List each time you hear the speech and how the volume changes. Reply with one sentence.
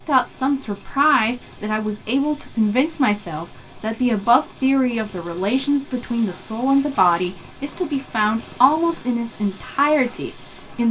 The speech can be heard from 0.1 to 10.8 s, at a steady volume.